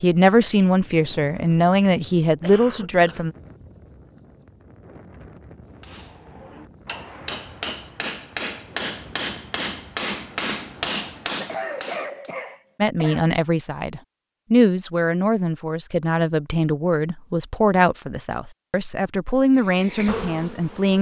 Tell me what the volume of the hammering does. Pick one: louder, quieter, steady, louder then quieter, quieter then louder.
louder.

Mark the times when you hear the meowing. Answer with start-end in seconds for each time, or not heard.
not heard.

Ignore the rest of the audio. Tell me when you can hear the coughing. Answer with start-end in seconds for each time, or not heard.
2.4-3.2, 11.3-13.2.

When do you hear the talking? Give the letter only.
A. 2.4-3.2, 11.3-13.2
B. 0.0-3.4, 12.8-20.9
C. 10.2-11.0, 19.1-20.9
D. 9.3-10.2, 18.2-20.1
B.